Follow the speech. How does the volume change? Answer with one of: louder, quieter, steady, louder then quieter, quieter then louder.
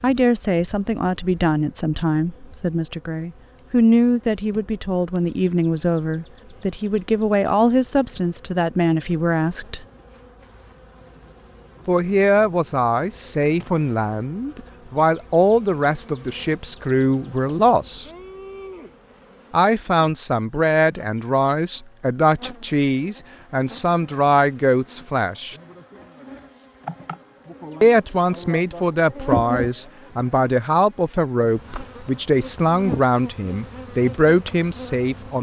steady.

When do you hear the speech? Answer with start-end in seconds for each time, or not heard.
0.0-9.8, 11.8-18.1, 19.5-25.6, 27.8-35.3.